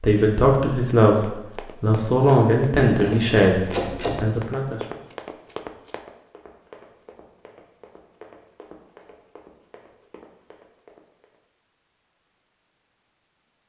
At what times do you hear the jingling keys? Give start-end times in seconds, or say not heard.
3.0-4.2.